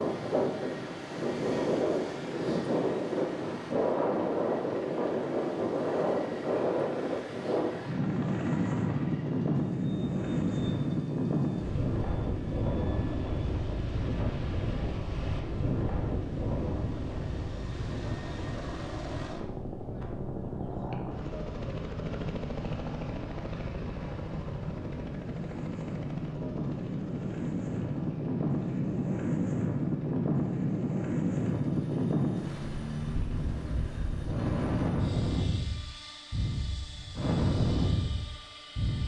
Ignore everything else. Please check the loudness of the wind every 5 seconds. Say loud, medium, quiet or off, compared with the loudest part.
loud, loud, loud, medium, quiet, loud, loud, loud.